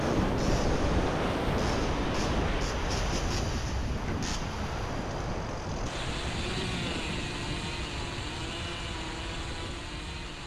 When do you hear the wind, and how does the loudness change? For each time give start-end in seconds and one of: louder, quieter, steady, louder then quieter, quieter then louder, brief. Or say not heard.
0.0-10.4 quieter.